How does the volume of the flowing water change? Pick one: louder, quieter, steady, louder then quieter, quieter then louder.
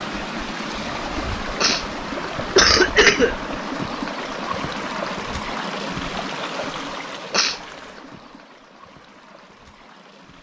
quieter.